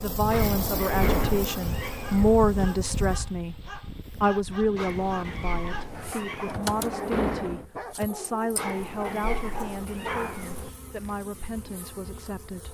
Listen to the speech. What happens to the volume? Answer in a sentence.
The loudness of the speech goes down.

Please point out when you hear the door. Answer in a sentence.
The door can be heard from 0.4 to 1.6 s and from 6.5 to 7.7 s.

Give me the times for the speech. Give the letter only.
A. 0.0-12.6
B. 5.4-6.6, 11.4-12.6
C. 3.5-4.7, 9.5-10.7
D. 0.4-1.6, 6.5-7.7
A.